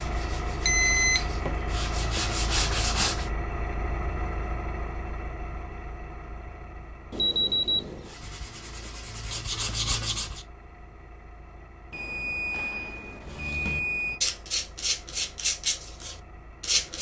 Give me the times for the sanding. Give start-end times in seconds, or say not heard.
0.0-3.3, 8.0-10.4, 13.2-16.9.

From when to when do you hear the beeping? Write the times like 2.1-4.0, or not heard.
0.7-1.2, 7.1-8.1, 11.9-14.2.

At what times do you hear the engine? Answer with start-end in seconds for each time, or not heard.
0.0-16.9.